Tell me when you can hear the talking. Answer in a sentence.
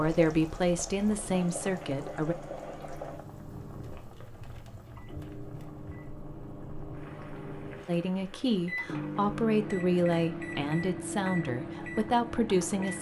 The talking can be heard from 0.0 to 2.4 s and from 7.8 to 12.9 s.